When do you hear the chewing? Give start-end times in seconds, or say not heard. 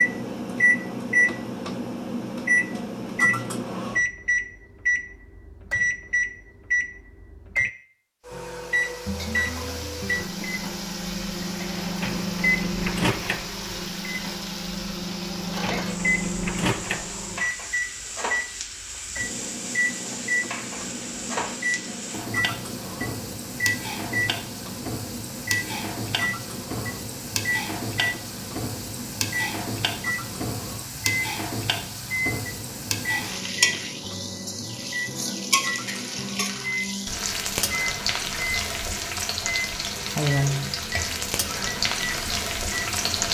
not heard.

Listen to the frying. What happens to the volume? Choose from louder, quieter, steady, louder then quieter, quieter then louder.
louder.